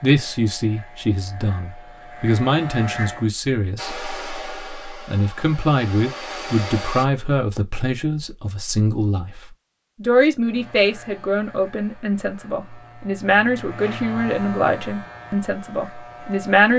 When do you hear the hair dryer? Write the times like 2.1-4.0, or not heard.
3.8-7.0.